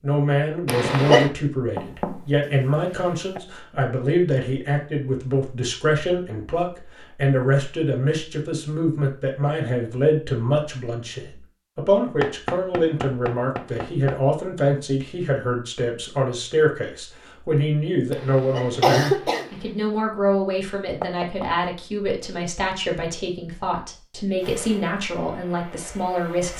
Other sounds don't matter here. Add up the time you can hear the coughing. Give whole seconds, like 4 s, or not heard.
2 s.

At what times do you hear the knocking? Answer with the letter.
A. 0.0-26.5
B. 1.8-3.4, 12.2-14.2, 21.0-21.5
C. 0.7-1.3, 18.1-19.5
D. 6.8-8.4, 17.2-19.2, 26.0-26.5
B.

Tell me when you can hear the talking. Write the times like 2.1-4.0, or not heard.
0.0-26.5.